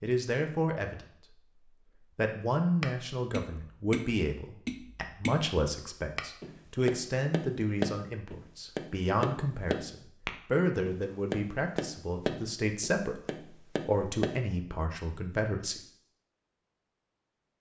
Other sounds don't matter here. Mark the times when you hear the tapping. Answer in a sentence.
The tapping can be heard from 2.8 to 14.4 s.